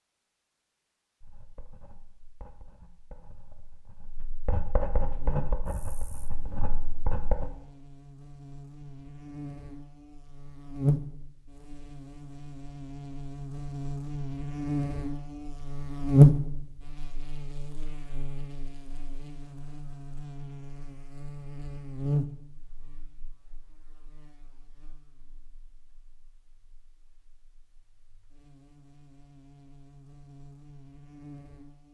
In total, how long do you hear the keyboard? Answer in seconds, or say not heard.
not heard.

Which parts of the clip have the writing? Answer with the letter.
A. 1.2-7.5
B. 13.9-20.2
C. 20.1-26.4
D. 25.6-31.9
A.